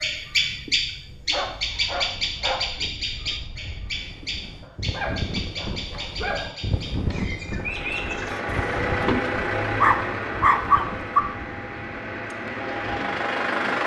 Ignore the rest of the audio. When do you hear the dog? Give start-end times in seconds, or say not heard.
1.3-2.9, 4.6-7.2, 9.7-11.2.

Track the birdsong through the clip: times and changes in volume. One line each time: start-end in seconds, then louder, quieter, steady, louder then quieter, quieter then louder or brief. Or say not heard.
0.0-8.4 quieter.